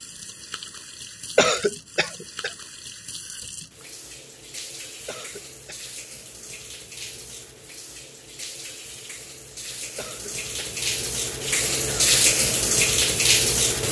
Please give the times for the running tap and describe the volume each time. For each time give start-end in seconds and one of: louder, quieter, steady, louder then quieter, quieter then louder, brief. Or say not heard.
0.0-13.8 louder.